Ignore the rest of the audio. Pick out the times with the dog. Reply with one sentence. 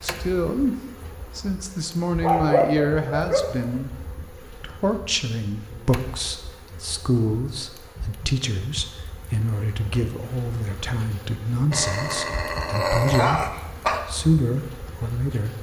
You can hear the dog from 2.2 to 3.8 s and from 11.7 to 14.1 s.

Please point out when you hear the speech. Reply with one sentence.
You can hear the speech from 0.0 to 15.5 s.